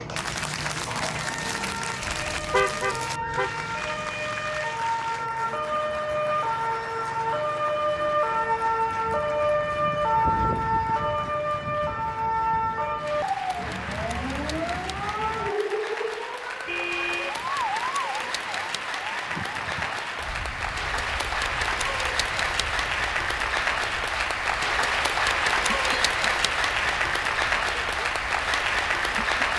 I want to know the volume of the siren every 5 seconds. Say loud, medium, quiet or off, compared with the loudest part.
medium, loud, loud, medium, quiet, quiet.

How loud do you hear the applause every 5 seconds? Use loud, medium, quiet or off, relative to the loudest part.
medium, quiet, quiet, medium, loud, loud.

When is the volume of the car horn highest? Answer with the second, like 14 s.
3 s.